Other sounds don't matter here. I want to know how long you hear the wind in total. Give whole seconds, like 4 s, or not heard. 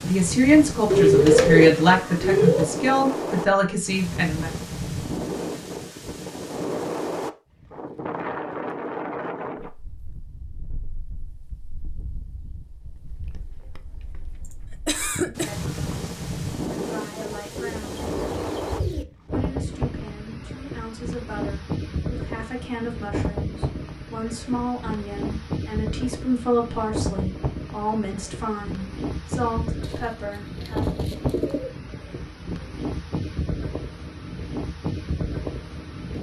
36 s.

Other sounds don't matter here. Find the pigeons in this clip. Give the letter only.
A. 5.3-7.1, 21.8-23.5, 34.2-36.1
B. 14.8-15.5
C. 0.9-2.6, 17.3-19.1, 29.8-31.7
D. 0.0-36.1
C.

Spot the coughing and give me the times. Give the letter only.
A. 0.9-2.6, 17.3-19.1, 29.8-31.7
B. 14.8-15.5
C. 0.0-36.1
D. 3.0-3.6
B.